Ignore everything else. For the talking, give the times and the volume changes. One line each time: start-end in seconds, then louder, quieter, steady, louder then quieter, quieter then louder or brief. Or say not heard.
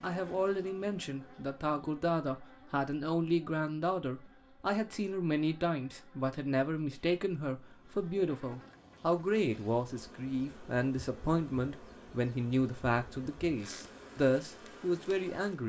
0.0-15.6 steady.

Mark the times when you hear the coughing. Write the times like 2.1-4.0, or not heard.
not heard.